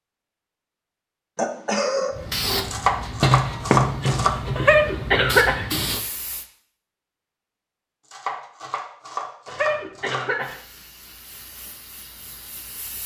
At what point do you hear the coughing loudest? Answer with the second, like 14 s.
5 s.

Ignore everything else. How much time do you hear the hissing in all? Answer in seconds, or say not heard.
7 s.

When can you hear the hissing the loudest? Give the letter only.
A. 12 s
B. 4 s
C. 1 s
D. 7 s
B.